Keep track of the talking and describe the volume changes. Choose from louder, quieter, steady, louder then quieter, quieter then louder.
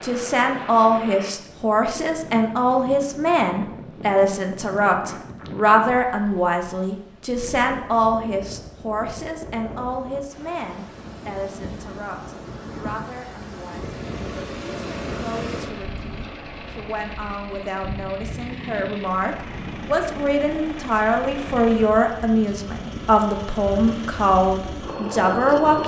quieter then louder.